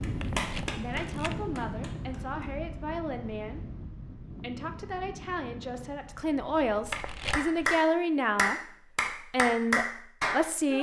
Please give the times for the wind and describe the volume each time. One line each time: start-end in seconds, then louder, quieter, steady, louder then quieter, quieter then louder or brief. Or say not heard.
0.0-7.2 quieter.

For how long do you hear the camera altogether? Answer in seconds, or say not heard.
2 s.